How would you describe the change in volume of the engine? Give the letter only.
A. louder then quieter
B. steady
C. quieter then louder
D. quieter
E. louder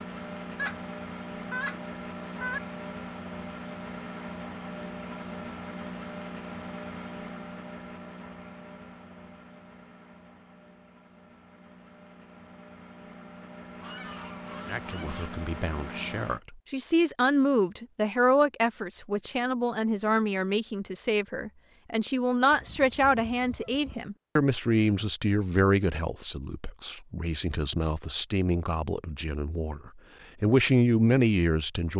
C.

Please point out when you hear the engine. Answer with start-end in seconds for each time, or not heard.
0.0-16.4.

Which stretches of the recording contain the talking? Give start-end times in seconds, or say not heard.
14.7-31.9.